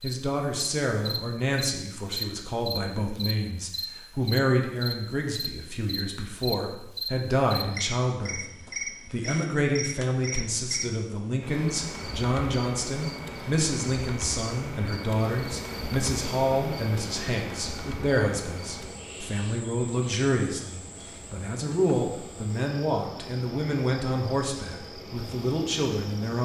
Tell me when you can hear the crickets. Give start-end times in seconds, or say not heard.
0.0-26.4.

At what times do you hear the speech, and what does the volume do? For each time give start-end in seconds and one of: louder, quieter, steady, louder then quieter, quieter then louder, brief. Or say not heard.
0.0-26.4 steady.